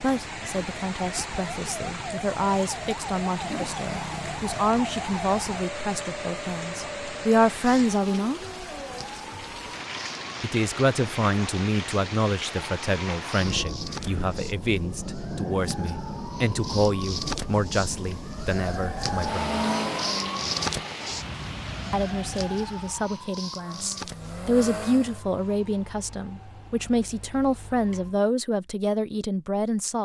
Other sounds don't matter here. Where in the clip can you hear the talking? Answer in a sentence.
You can hear the talking from 0.0 to 8.4 s, from 10.4 to 19.6 s and from 21.9 to 30.0 s.